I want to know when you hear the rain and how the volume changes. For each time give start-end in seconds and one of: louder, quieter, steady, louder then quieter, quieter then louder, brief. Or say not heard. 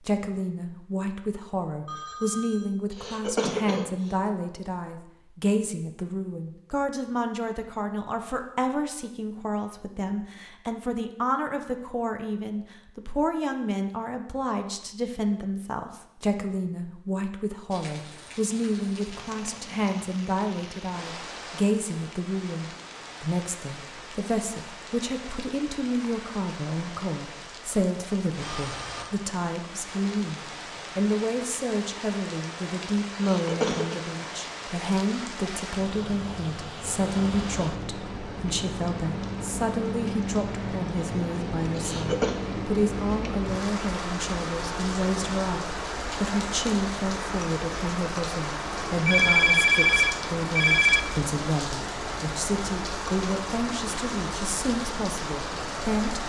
17.7-56.2 louder.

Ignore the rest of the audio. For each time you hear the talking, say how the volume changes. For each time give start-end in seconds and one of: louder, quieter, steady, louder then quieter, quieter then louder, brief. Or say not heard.
0.0-56.2 steady.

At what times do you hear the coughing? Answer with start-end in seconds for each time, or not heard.
2.9-3.9, 33.1-34.0, 41.8-42.4.